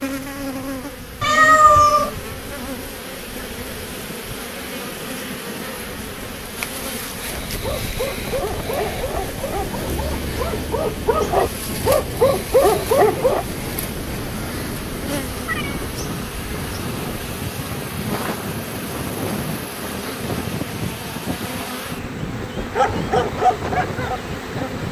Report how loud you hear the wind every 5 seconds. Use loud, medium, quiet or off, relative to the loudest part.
quiet, medium, loud, loud, loud.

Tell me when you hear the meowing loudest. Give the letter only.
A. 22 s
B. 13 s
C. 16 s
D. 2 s
D.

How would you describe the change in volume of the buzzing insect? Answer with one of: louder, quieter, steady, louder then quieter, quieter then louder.
steady.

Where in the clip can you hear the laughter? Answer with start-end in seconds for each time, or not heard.
not heard.